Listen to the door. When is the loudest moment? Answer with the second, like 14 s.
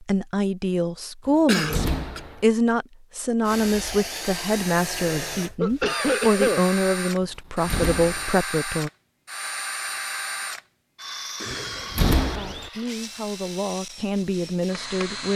12 s.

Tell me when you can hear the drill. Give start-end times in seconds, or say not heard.
3.5-15.3.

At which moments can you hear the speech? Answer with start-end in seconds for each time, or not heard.
0.0-8.9, 12.2-15.3.